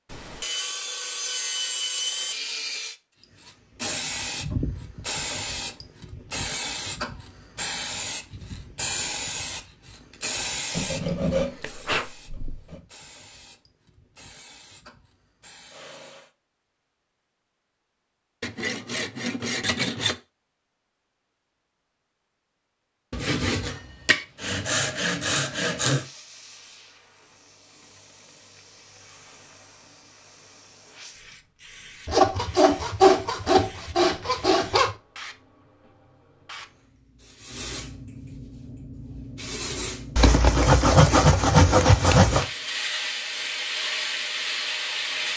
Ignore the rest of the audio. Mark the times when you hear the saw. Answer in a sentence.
You can hear the saw from 0.1 to 3.0 s, from 10.7 to 12.8 s, from 18.4 to 20.1 s, from 23.1 to 26.1 s, from 32.0 to 35.0 s and from 40.1 to 42.5 s.